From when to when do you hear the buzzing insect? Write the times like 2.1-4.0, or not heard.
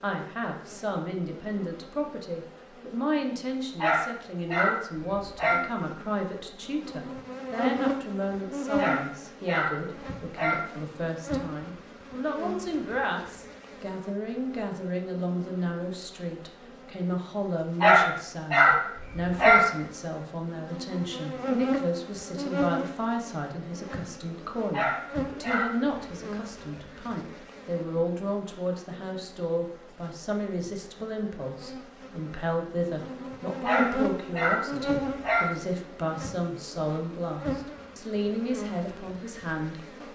0.0-40.0.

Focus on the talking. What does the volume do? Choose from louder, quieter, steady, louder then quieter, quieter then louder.
steady.